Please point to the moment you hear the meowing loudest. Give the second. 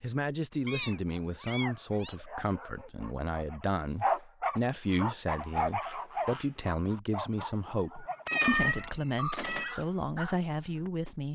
9 s.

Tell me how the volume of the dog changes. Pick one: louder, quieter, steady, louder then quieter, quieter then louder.
louder then quieter.